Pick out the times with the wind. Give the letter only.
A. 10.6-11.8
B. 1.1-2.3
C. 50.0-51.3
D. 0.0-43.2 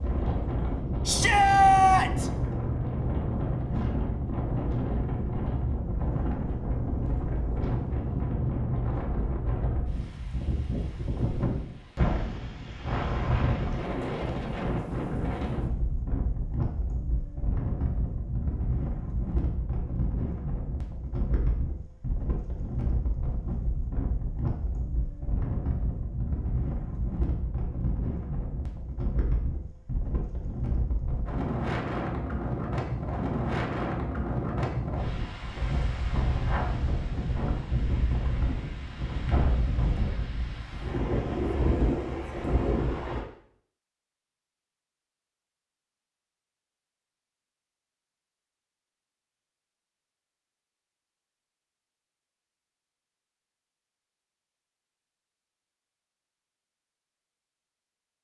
D.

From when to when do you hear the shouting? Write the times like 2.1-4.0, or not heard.
1.1-2.3.